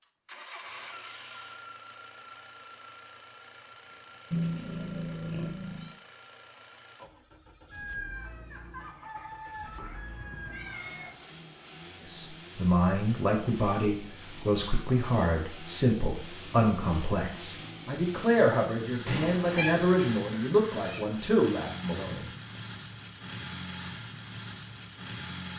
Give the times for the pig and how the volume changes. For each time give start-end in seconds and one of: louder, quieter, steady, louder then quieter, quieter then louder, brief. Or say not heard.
not heard.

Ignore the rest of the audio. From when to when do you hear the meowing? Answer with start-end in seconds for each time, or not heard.
4.3-6.0, 9.8-11.1, 19.1-19.8.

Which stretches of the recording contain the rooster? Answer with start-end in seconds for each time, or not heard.
7.7-11.2, 20.3-21.1.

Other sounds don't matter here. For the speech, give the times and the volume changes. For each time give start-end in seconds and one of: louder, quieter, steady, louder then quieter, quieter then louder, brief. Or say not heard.
12.1-22.2 steady.